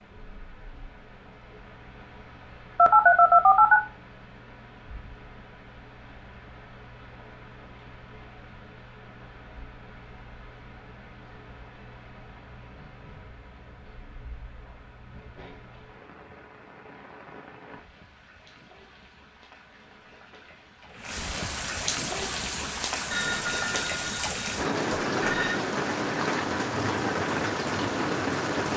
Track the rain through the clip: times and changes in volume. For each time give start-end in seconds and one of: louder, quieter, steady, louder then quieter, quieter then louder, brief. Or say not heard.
0.0-28.7 louder.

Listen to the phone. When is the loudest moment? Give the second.
3 s.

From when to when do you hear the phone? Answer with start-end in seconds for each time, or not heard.
2.8-3.8, 23.1-25.6.